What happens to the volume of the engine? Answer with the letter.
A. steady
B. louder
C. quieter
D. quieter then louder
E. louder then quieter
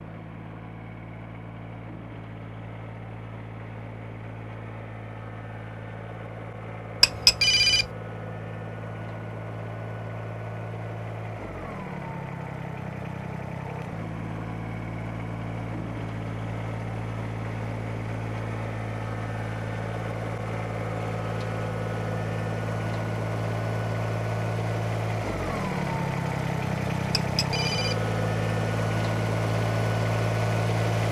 B.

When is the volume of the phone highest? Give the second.
7 s.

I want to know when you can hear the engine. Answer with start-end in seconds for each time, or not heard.
0.0-31.0.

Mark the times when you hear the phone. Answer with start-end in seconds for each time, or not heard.
7.0-7.9, 27.1-28.0.